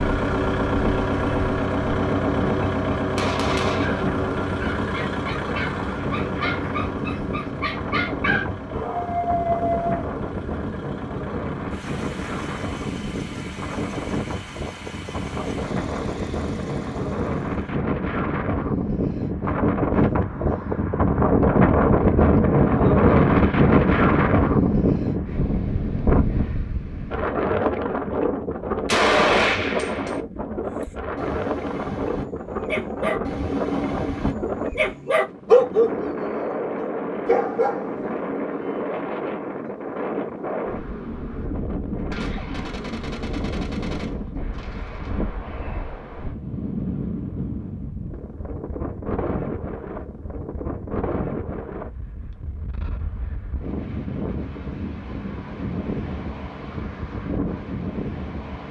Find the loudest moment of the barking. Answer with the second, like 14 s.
36 s.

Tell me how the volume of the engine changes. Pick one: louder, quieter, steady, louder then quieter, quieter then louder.
quieter.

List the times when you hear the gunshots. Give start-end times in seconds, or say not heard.
3.1-4.0, 28.9-30.2, 42.1-45.1.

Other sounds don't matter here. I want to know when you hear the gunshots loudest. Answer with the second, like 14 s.
29 s.